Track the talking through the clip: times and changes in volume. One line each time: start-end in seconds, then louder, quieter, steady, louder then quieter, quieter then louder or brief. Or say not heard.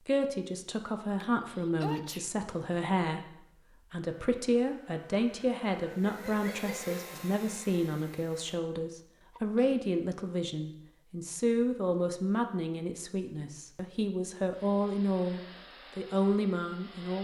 0.0-17.2 steady.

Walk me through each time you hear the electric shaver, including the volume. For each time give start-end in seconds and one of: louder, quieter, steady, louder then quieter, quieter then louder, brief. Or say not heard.
not heard.